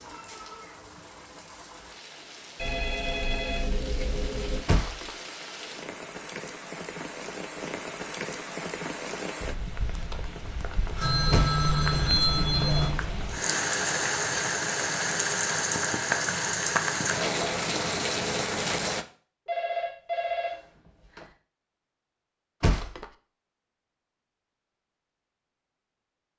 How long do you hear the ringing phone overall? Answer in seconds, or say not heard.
6 s.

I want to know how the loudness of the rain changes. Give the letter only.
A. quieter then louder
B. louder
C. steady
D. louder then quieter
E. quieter
B.